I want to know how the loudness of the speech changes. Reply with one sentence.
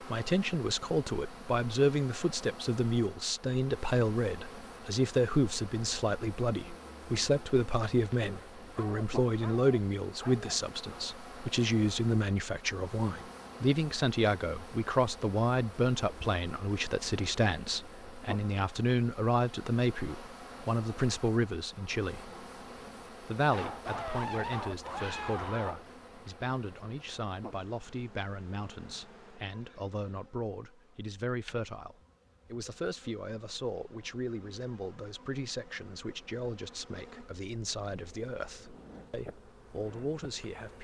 The volume of the speech goes down.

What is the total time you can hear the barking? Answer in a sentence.
The barking can be heard for 5 seconds in total.